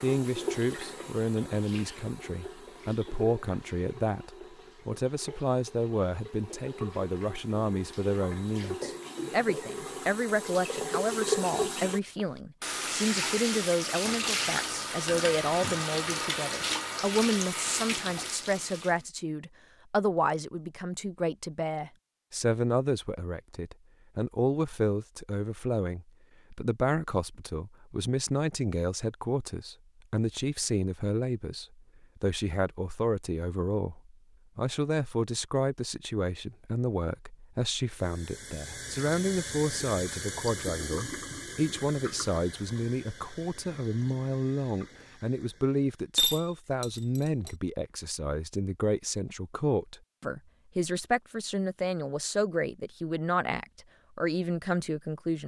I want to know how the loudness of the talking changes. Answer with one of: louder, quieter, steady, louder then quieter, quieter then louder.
steady.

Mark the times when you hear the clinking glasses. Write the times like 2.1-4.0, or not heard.
15.1-15.8, 46.1-47.5.